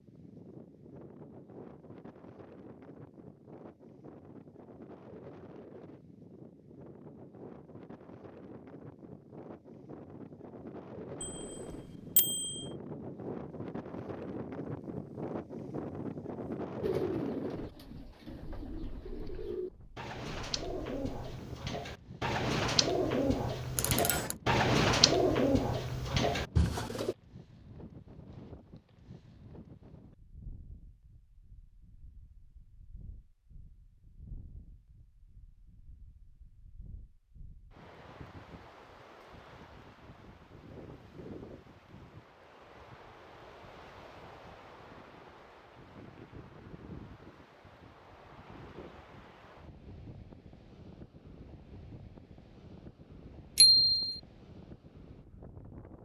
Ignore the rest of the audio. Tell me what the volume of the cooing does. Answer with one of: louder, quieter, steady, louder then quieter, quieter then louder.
louder.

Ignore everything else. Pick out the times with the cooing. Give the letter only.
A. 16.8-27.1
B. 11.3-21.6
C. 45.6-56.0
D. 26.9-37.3
A.